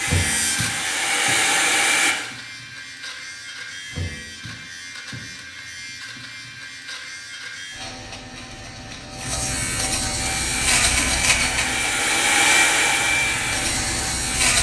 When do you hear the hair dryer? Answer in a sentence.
The hair dryer can be heard from 0.0 to 2.1 s and from 10.2 to 14.3 s.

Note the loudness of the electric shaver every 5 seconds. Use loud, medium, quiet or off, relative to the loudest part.
medium, medium, loud.